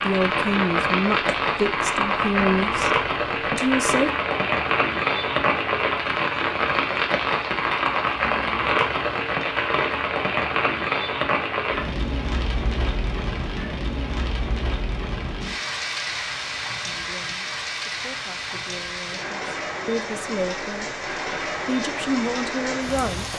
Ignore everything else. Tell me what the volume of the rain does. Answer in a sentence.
The volume of the rain goes down.